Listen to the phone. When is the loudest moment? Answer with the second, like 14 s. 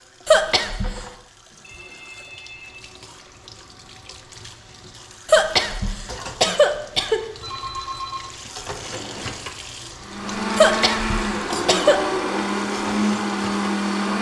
8 s.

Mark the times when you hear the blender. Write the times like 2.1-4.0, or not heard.
10.0-14.1.